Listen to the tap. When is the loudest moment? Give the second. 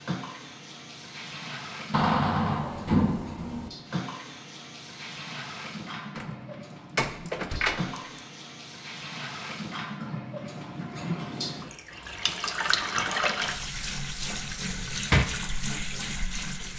13 s.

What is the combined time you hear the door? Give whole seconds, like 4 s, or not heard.
4 s.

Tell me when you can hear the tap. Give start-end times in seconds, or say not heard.
0.0-16.7.